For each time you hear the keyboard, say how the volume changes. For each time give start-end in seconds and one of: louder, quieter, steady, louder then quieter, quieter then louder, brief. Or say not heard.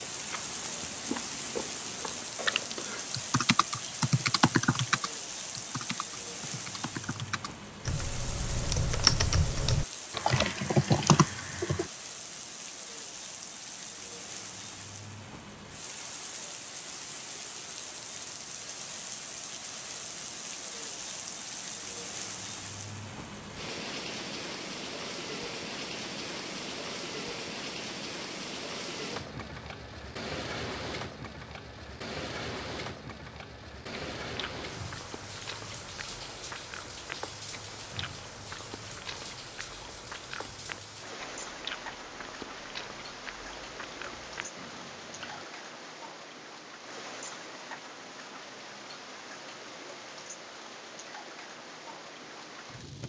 2.4-11.9 quieter then louder.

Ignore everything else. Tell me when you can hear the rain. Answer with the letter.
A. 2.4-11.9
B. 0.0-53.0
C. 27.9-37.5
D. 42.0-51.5
B.